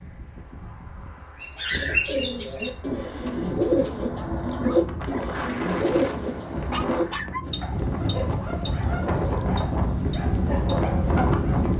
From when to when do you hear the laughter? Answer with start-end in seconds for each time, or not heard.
not heard.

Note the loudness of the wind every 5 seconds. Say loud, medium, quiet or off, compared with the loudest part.
quiet, medium, loud.